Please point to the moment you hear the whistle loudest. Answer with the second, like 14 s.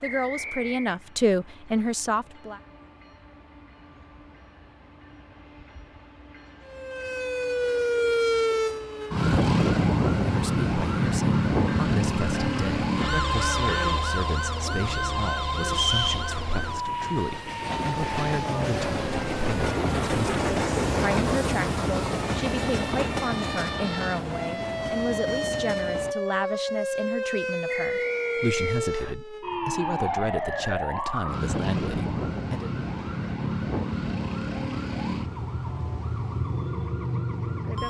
16 s.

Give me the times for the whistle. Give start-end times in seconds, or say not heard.
0.0-1.0, 15.7-16.3, 27.6-29.1.